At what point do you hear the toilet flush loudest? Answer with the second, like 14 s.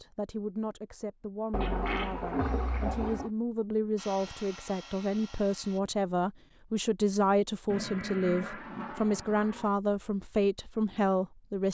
2 s.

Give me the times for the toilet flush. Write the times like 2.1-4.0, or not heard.
1.5-3.3, 7.7-9.7.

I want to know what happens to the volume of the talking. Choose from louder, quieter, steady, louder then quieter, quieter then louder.
louder.